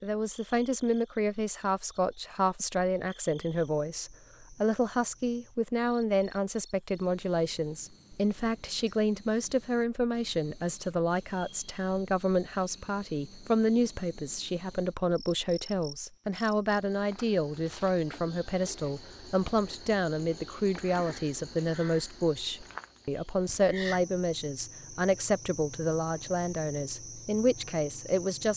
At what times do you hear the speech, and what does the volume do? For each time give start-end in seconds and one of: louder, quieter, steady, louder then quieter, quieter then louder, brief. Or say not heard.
0.0-28.5 steady.